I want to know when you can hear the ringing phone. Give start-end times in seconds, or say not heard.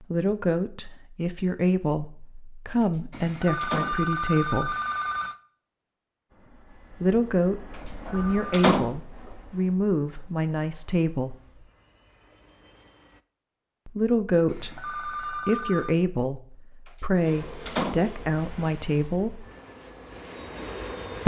3.1-5.3, 7.8-8.7, 14.4-15.9.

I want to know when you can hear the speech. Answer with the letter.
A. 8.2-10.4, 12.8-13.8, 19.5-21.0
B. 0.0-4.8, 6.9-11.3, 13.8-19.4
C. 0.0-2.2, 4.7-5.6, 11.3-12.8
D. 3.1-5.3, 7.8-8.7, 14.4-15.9
B.